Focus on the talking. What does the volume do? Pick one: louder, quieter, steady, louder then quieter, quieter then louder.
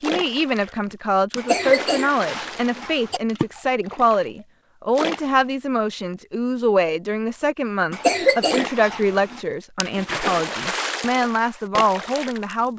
steady.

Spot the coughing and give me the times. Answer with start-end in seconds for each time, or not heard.
1.4-3.2, 7.9-9.4.